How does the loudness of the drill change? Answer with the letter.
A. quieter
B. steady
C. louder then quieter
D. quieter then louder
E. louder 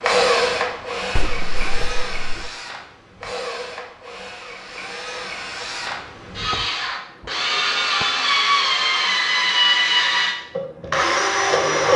D.